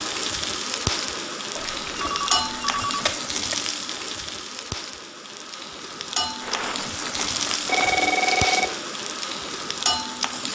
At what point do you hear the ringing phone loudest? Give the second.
8 s.